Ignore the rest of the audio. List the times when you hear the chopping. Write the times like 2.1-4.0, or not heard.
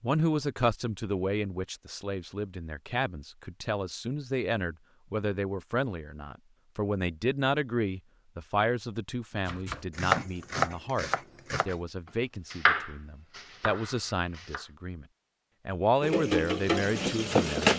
9.4-14.7.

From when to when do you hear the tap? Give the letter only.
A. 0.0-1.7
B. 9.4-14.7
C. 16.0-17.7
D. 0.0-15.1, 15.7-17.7
C.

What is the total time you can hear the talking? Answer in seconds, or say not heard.
17 s.